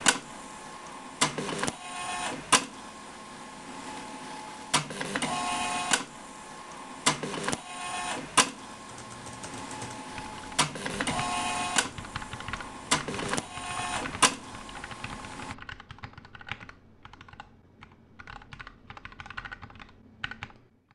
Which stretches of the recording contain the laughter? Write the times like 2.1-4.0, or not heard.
not heard.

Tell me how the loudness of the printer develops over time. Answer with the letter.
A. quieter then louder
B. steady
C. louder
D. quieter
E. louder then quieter
B.